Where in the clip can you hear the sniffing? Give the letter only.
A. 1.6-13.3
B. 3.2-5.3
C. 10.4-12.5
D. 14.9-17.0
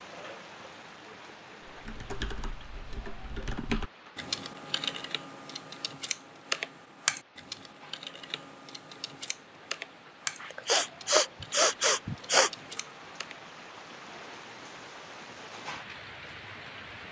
C.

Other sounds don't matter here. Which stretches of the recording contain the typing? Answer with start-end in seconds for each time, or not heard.
1.6-13.3.